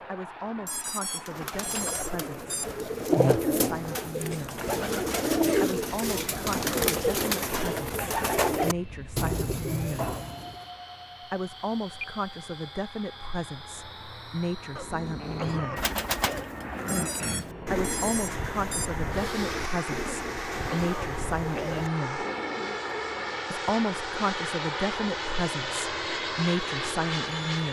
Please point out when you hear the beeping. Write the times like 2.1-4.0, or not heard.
0.7-2.6, 16.9-18.9.